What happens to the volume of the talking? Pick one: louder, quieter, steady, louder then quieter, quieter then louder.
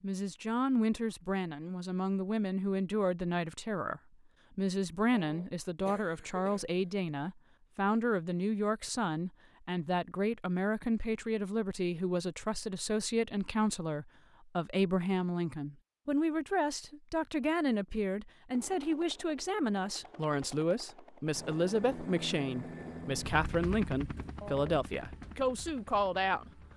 steady.